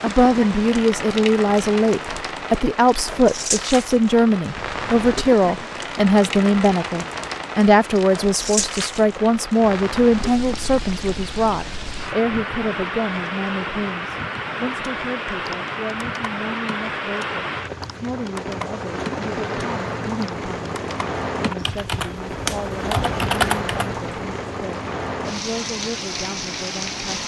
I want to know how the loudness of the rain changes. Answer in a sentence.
The loudness of the rain stays about the same.